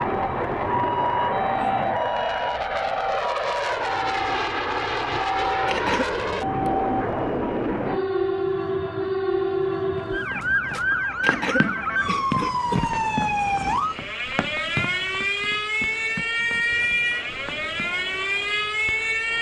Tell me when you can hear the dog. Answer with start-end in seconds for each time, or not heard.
not heard.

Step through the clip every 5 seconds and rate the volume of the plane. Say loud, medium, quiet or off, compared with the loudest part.
loud, loud, quiet, quiet.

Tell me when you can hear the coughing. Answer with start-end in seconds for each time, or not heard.
5.7-6.1, 11.2-12.8.